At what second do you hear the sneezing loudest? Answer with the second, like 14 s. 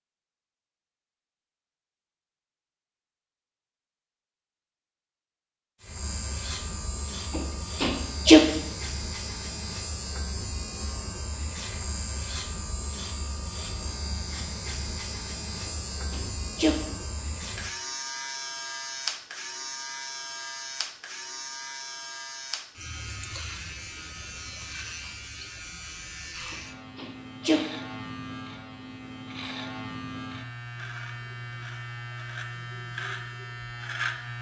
8 s.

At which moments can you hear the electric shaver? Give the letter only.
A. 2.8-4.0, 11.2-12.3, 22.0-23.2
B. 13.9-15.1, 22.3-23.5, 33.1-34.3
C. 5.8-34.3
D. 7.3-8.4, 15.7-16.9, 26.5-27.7
C.